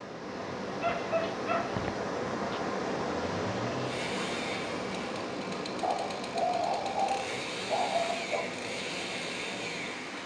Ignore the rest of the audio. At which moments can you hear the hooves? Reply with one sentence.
The hooves can't be heard in this clip.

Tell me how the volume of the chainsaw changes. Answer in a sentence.
The loudness of the chainsaw goes down, then up.